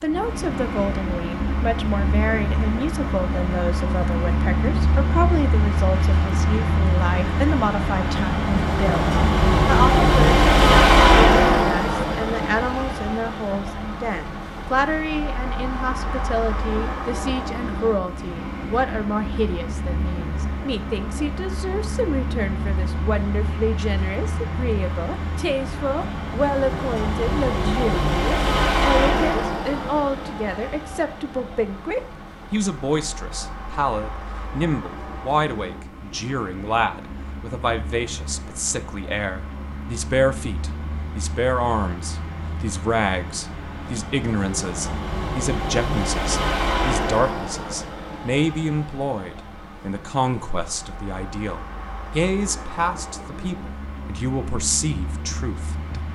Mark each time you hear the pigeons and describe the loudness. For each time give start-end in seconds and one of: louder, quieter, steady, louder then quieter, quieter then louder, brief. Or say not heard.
not heard.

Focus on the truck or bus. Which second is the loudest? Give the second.
11 s.